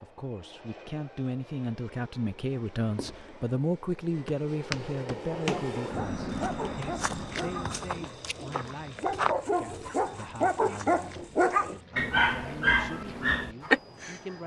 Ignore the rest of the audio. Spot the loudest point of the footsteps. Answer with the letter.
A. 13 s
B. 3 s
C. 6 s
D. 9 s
D.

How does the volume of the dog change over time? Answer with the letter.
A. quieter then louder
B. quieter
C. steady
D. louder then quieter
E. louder
E.